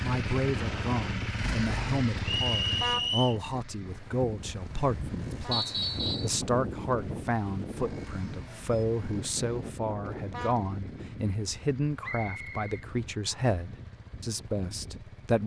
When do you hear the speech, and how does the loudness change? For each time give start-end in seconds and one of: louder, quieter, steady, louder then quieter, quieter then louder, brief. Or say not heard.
0.0-15.4 steady.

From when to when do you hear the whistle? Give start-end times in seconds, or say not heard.
2.2-3.4, 5.5-6.3, 12.0-13.5.